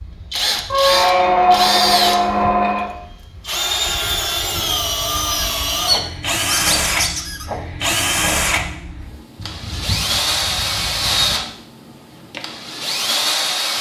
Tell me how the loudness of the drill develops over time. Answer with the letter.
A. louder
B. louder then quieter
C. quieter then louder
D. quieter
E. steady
E.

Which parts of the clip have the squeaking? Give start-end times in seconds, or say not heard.
0.7-3.0, 5.2-7.5, 9.3-11.3.